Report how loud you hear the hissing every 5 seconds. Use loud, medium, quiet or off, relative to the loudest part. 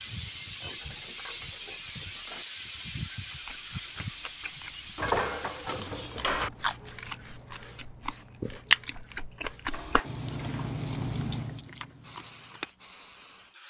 loud, medium, quiet.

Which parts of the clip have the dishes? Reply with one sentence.
The dishes can be heard from 0.8 to 2.5 s, from 5.0 to 6.5 s and from 9.7 to 10.8 s.